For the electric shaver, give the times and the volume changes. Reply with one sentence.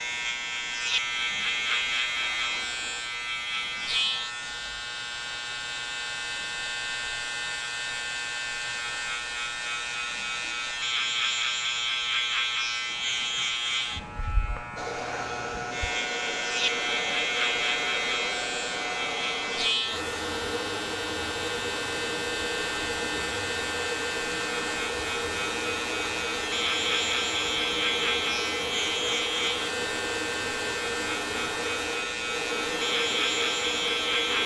The electric shaver can be heard from 0.0 to 34.4 s, at a steady volume.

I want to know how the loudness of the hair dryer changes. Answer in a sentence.
The volume of the hair dryer stays about the same.